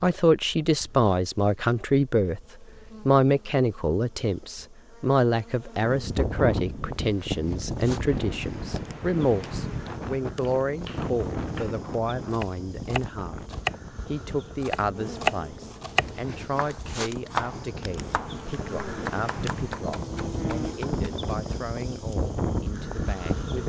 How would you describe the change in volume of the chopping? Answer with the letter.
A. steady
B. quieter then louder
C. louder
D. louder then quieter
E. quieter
D.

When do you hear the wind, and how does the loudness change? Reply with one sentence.
The wind can be heard from 5.8 to 23.6 s, getting quieter then louder.